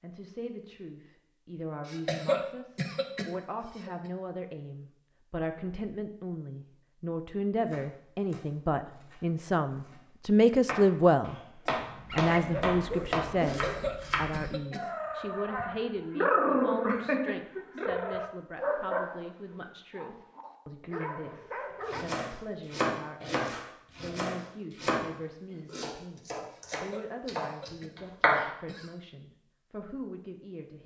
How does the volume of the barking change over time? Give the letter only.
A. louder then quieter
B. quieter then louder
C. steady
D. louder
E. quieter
A.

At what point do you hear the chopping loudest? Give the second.
28 s.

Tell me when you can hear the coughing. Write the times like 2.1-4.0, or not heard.
1.9-4.1, 13.4-14.8, 26.5-28.9.